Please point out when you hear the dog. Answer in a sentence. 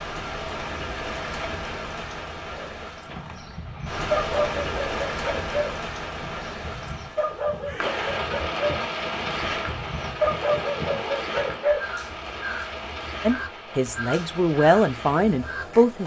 The dog can be heard from 2.5 to 11.8 s.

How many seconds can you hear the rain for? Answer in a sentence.
The rain can be heard for 16 seconds in total.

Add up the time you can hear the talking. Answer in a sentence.
You can hear the talking for 3 seconds altogether.